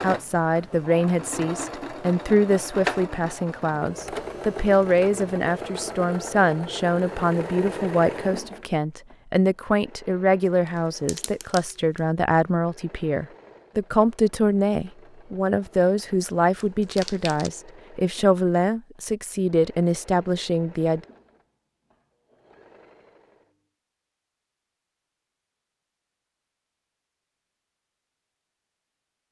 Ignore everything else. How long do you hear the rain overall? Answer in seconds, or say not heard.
not heard.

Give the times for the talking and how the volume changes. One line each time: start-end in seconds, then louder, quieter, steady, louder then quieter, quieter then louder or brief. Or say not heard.
0.0-21.0 steady.